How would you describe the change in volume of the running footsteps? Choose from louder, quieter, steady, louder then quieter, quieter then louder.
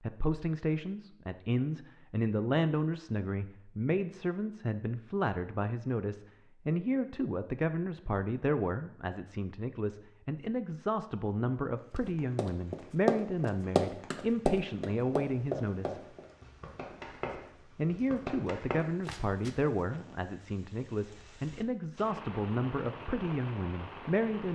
quieter.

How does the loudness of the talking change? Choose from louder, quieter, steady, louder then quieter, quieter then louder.
steady.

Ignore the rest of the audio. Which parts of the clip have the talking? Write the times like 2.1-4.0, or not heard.
0.0-16.1, 17.3-24.4.